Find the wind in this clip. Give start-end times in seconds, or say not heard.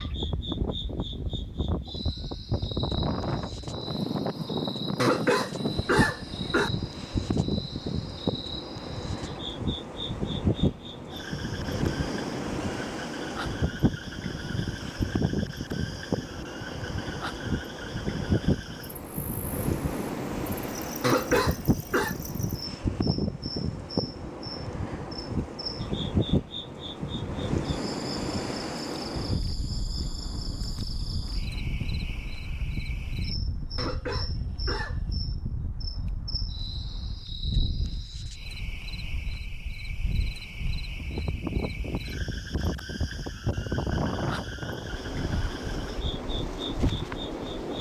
0.0-47.7.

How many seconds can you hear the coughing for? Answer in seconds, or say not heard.
4 s.